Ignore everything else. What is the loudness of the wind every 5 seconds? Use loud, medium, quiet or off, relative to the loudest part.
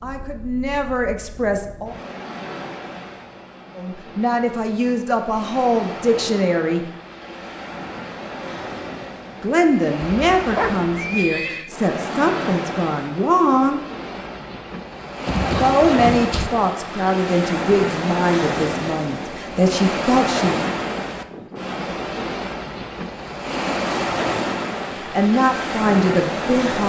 quiet, medium, medium, loud, loud, loud.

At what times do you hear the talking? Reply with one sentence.
You can hear the talking from 0.0 to 1.9 s, from 3.8 to 6.8 s, from 9.4 to 13.8 s, from 15.6 to 20.7 s and from 24.9 to 26.8 s.